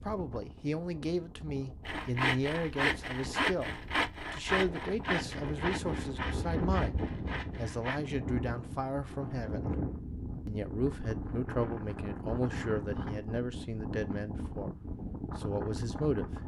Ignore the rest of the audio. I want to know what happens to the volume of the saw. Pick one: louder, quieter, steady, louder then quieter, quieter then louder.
quieter.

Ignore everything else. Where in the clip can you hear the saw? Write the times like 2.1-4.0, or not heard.
1.9-8.0.